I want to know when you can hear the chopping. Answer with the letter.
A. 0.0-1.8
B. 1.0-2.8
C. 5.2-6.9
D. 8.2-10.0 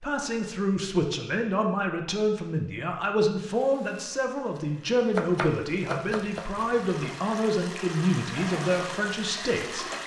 C.